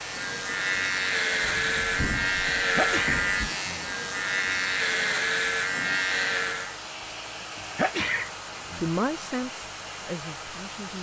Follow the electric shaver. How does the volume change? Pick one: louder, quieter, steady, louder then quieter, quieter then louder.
steady.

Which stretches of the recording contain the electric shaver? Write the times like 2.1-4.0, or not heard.
0.0-6.8.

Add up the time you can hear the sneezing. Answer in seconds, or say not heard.
2 s.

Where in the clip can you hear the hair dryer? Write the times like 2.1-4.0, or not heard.
0.0-10.9.